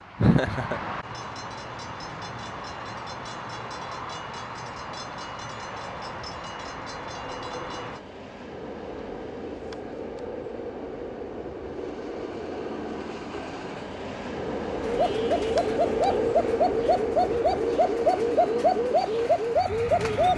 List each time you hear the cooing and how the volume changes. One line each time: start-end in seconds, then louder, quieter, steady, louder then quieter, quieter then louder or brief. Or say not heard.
14.8-20.3 steady.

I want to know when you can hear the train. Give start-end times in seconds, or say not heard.
0.0-20.3.